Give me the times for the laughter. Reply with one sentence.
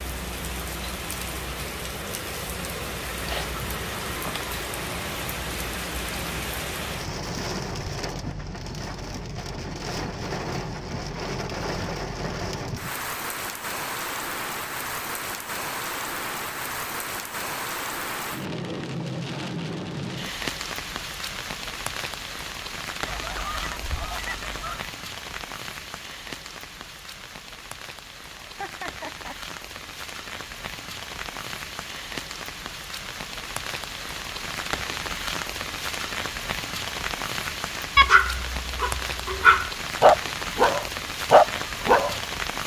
The laughter can be heard from 28.4 to 29.4 s.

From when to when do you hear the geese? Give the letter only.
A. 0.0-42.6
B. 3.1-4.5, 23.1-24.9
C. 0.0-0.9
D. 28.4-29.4
B.